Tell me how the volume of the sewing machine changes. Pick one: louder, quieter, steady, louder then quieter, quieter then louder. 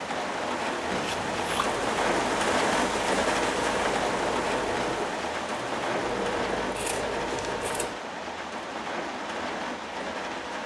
steady.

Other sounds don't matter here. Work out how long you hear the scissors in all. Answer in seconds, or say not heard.
2 s.